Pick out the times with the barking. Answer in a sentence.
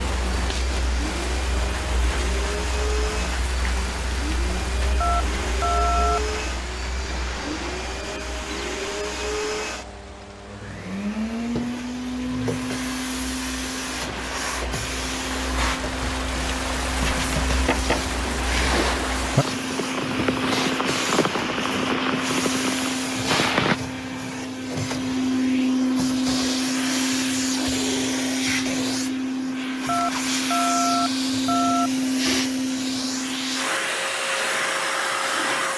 You can't hear the barking here.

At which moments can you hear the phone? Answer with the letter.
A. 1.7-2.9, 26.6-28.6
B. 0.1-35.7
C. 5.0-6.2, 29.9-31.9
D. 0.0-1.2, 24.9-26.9
C.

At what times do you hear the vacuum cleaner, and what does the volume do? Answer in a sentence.
You can hear the vacuum cleaner from 0.1 to 35.7 s, getting louder.